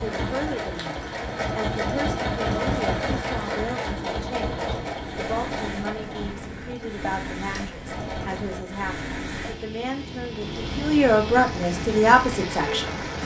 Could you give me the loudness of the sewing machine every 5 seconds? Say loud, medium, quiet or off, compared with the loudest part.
loud, medium, off.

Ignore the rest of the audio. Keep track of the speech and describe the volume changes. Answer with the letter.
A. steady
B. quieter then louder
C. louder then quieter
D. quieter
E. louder
E.